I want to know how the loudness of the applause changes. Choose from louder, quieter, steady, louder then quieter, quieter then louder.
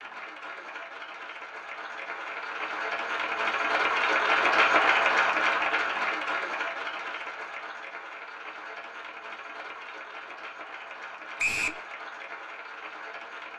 louder then quieter.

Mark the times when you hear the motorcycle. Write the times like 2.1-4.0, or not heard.
not heard.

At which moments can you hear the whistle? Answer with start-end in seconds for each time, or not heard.
11.3-11.8.